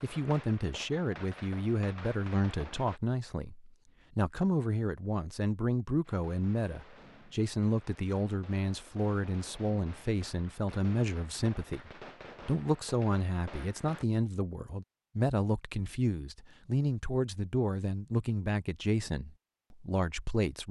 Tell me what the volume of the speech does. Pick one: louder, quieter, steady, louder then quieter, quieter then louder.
steady.